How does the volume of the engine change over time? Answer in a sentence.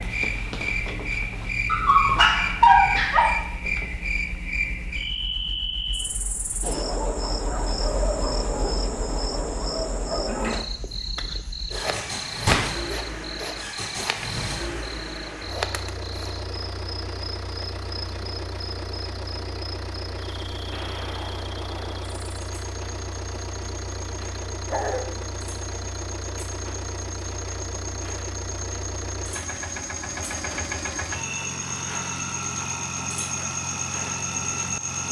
The volume of the engine goes up.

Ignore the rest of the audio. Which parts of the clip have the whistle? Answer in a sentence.
You can't hear the whistle here.